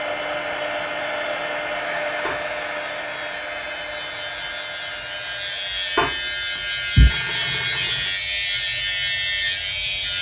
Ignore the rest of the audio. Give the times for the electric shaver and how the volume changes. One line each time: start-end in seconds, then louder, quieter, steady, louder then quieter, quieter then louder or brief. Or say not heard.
0.0-10.1 louder.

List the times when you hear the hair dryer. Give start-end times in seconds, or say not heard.
0.0-10.1.